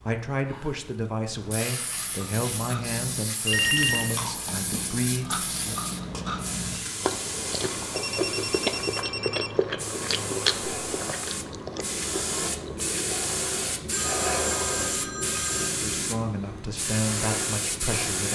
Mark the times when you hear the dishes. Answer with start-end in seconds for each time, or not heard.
not heard.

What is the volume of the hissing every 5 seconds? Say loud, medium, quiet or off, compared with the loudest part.
medium, medium, loud, loud.